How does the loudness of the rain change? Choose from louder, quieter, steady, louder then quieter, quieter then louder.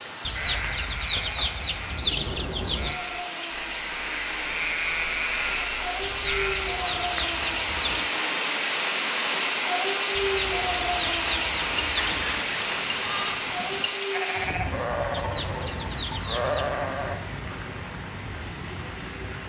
louder then quieter.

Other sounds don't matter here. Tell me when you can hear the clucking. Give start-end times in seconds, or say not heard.
0.2-3.0, 6.0-8.1, 10.2-12.3, 15.1-16.8.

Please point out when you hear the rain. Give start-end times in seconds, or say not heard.
0.0-19.4.